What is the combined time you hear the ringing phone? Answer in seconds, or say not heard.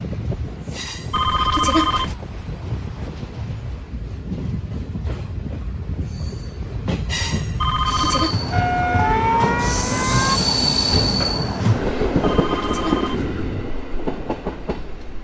3 s.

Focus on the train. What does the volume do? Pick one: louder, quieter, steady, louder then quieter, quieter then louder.
louder.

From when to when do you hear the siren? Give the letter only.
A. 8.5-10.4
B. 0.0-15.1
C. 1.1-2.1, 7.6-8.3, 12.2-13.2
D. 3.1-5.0
A.